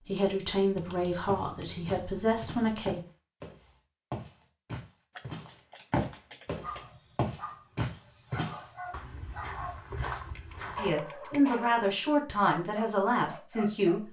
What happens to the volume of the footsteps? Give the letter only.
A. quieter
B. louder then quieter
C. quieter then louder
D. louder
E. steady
B.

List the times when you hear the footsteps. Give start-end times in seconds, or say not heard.
1.2-10.9.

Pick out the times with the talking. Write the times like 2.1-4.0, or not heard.
0.1-3.0, 10.7-14.0.